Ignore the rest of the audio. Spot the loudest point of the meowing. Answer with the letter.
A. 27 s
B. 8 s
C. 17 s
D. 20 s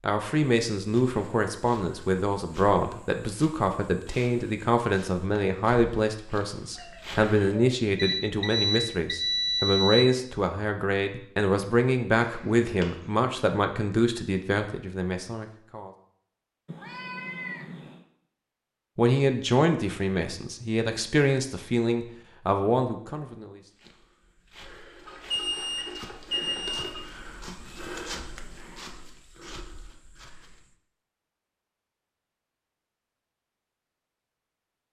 C.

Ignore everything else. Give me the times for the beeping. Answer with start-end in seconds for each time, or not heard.
8.0-10.0, 12.2-12.8, 25.1-27.0.